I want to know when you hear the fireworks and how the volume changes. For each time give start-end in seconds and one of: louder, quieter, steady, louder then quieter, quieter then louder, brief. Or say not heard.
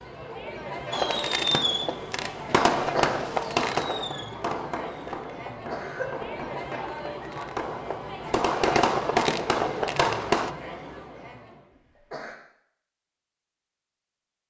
0.9-10.6 quieter then louder.